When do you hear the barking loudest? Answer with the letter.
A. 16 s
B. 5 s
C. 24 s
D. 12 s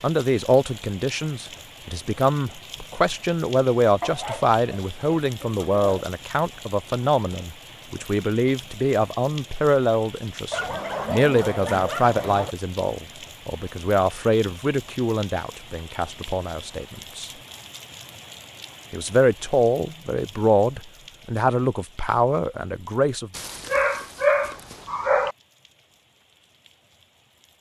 C.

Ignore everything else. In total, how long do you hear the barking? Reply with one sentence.
The barking can be heard for 6 seconds in total.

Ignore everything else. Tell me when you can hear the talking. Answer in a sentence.
You can hear the talking from 0.0 to 17.3 s and from 18.9 to 23.3 s.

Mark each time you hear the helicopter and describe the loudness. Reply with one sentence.
The helicopter can't be heard in this clip.